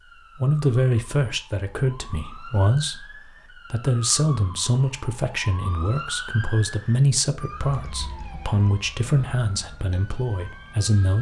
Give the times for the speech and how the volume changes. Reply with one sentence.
The speech can be heard from 0.3 to 11.1 s, at a steady volume.